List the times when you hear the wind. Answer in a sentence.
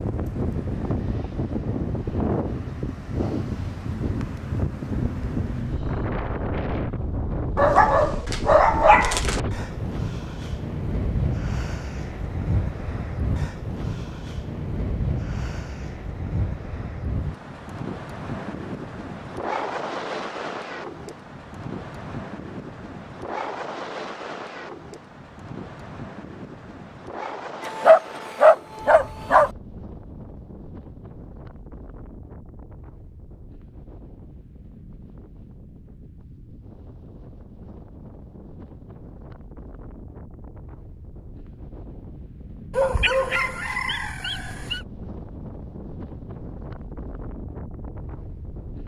The wind can be heard from 0.0 to 48.8 s.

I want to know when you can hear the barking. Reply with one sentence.
You can hear the barking from 7.5 to 9.4 s, from 27.6 to 29.5 s and from 42.7 to 44.8 s.